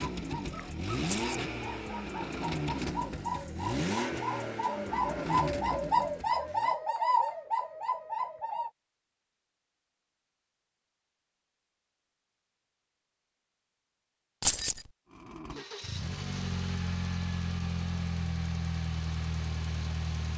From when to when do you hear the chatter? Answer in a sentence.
The chatter can't be heard in this clip.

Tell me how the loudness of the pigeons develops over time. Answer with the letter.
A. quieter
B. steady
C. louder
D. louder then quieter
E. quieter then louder
C.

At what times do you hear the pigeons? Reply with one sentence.
The pigeons can be heard from 0.0 to 8.7 s.